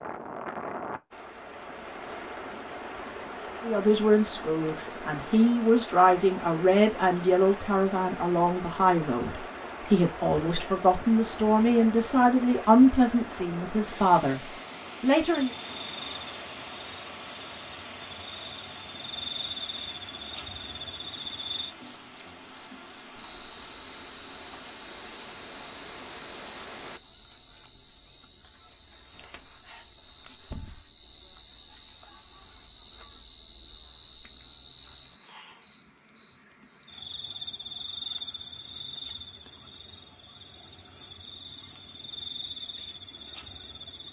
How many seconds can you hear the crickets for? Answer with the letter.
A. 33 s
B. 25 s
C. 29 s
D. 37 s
C.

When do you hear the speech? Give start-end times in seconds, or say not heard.
3.6-14.4, 15.0-15.5.